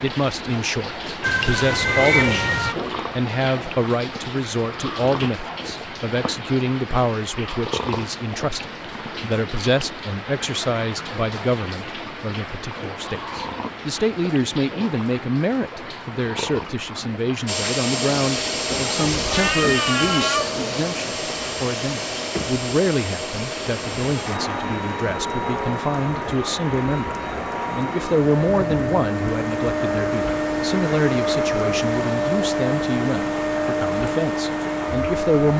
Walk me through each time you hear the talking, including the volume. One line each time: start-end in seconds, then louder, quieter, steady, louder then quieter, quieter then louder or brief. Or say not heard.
0.0-35.5 steady.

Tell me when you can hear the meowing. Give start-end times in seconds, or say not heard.
1.2-2.8, 19.2-20.7, 28.4-28.9.